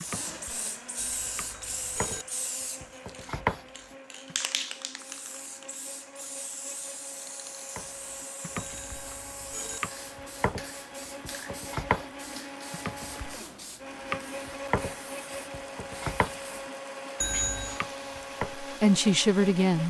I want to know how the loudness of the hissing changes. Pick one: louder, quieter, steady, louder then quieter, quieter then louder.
quieter.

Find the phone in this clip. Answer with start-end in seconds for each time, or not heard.
0.9-2.2, 8.6-9.8, 17.2-17.8.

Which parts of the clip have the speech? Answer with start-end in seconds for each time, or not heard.
18.6-19.8.